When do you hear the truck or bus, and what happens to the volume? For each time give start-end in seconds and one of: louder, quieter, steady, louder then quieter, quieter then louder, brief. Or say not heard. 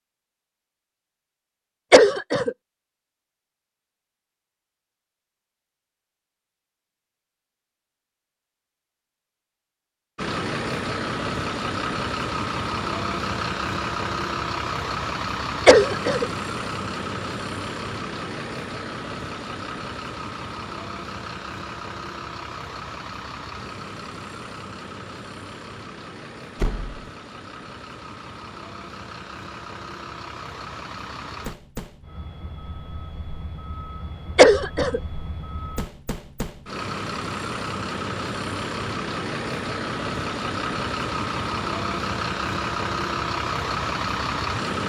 10.2-44.8 quieter then louder.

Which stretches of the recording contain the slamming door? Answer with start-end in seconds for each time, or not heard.
26.6-27.1.